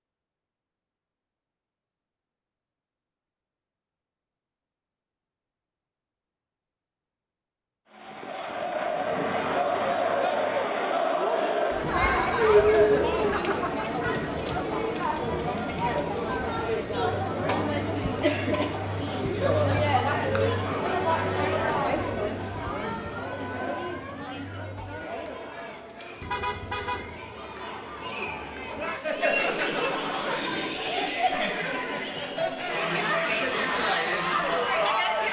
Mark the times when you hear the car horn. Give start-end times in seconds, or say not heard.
26.2-27.2.